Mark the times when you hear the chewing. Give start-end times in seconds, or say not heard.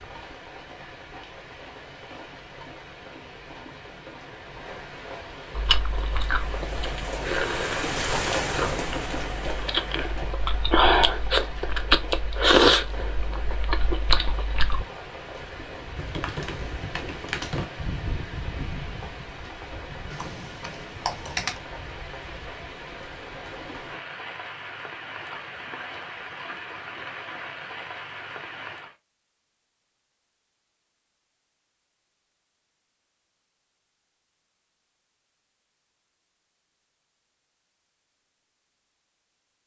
5.5-14.8.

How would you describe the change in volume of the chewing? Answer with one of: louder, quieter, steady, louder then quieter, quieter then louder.
louder then quieter.